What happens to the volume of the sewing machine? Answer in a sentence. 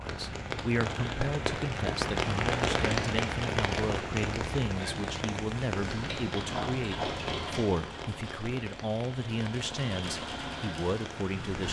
The volume of the sewing machine goes down, then up.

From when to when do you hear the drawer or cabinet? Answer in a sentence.
You can't hear the drawer or cabinet here.